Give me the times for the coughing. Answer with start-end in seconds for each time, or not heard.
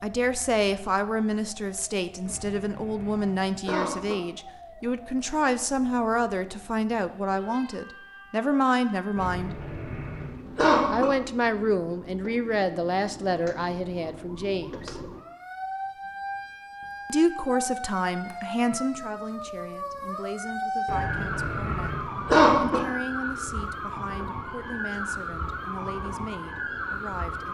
2.2-4.2, 9.2-11.1, 20.9-22.8.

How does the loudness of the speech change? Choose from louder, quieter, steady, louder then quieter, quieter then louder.
quieter.